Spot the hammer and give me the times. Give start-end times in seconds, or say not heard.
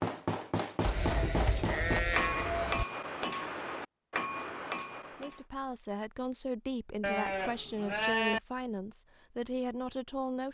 0.0-5.4.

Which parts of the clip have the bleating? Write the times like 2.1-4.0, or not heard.
0.8-2.9, 7.0-8.4.